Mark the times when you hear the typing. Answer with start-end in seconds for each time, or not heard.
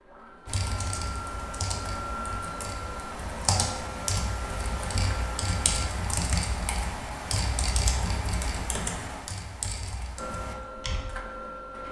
0.5-11.1.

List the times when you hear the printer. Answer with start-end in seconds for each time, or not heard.
0.0-5.9, 10.2-11.8.